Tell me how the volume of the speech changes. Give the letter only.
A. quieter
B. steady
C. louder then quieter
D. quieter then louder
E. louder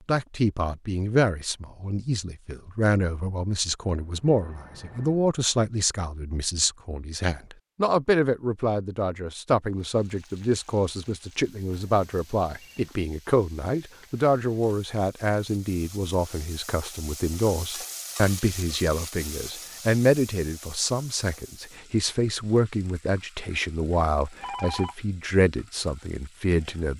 B.